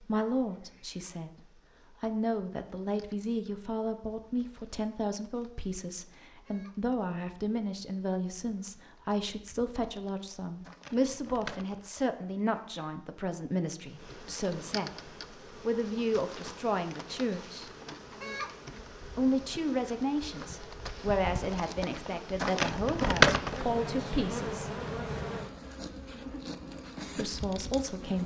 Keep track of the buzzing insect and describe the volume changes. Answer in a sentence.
The loudness of the buzzing insect goes up.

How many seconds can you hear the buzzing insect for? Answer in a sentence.
You can hear the buzzing insect for 28 seconds altogether.